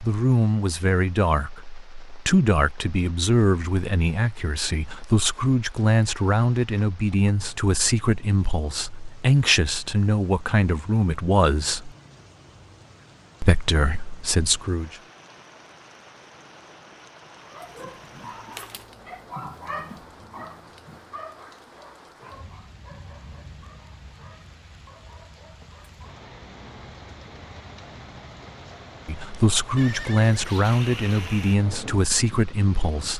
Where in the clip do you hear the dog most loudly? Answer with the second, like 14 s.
20 s.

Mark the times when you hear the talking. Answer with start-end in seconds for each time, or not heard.
0.0-11.9, 13.4-14.9, 29.1-33.1.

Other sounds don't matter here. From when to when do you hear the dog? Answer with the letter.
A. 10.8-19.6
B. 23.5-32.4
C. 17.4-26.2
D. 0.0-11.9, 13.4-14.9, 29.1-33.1
C.